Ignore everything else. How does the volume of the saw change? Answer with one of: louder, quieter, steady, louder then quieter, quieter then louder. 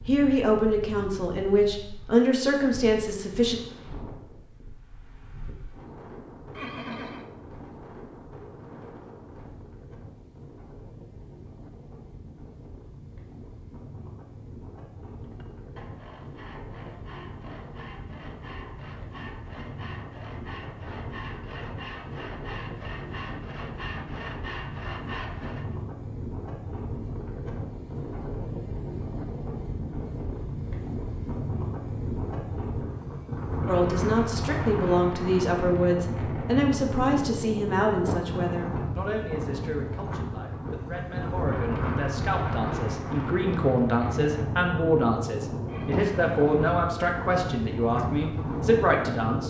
louder.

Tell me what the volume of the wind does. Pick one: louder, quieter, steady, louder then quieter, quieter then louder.
louder.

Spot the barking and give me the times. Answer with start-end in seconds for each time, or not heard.
not heard.